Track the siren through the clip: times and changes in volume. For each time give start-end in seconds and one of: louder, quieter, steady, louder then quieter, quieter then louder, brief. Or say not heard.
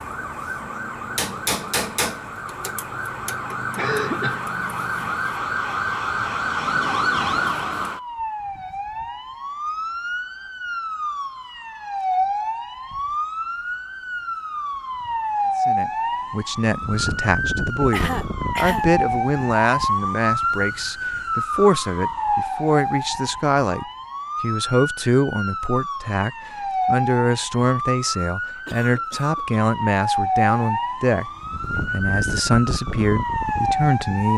0.0-34.3 steady.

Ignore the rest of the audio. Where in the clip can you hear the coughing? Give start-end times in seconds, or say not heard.
3.8-4.5, 17.9-18.9, 28.6-29.6.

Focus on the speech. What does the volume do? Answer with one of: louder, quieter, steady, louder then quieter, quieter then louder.
steady.